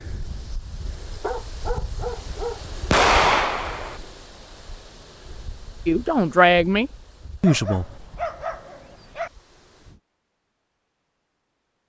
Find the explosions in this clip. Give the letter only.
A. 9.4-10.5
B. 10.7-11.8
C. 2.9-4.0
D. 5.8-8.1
C.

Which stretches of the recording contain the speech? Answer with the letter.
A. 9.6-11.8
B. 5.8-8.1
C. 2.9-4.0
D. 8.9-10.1
B.